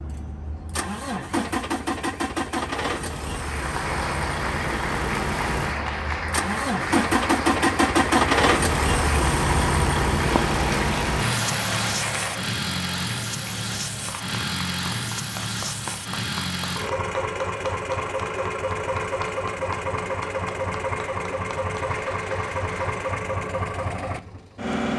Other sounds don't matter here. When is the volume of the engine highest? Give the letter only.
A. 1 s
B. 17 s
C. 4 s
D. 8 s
D.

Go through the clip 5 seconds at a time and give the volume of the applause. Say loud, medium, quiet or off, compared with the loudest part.
loud, loud, loud, medium, medium.